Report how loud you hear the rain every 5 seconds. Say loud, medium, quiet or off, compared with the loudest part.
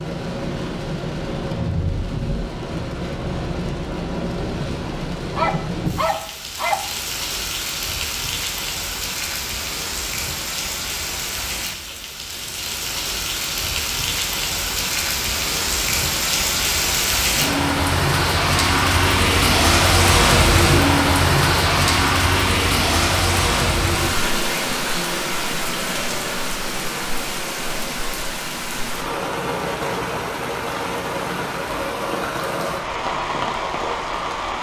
medium, medium, medium, loud, loud, medium, medium.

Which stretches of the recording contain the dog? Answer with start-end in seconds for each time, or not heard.
5.3-6.8.